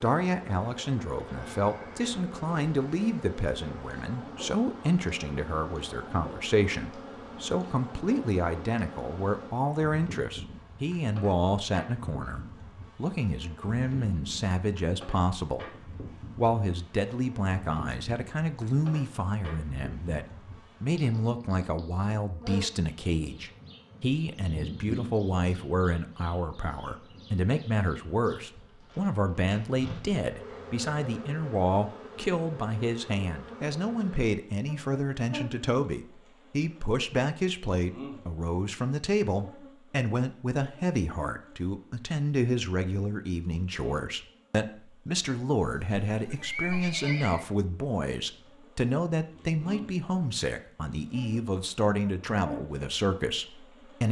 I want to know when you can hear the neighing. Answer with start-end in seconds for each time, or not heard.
45.6-47.5.